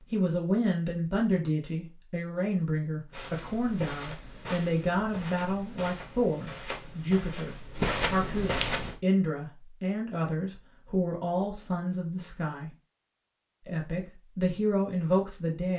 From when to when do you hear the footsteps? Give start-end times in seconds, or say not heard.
3.1-8.9.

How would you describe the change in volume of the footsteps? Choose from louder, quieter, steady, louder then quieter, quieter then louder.
louder.